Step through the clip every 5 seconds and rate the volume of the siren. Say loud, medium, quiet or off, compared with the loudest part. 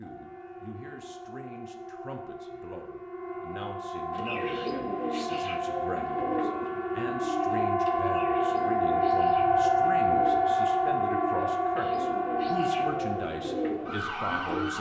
quiet, loud, loud.